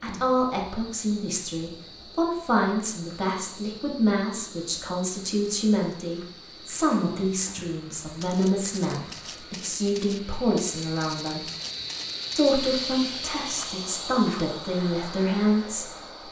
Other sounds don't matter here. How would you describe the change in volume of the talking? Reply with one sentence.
The volume of the talking stays about the same.